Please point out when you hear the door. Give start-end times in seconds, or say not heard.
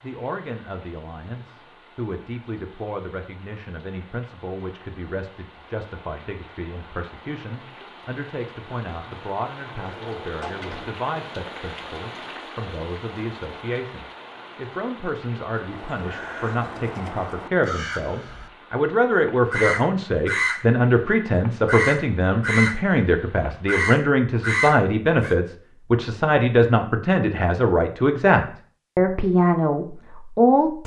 9.8-10.9.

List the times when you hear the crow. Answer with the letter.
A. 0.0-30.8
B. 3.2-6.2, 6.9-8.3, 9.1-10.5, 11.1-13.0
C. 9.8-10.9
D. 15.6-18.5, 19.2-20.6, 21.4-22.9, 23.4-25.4
D.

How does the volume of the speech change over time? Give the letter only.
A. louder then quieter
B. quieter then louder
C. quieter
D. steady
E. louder
E.